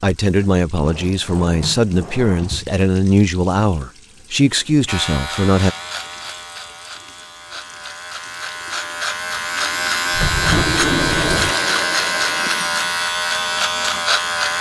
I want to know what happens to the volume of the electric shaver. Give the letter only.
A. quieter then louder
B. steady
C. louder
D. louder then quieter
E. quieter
C.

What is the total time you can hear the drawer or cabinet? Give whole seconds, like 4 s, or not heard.
3 s.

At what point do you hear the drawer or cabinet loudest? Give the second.
11 s.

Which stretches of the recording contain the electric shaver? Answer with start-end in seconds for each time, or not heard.
4.8-14.5.